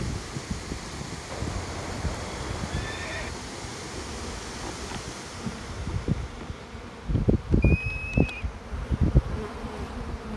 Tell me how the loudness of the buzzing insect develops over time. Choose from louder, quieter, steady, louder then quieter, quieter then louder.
louder.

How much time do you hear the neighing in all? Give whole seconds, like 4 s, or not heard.
3 s.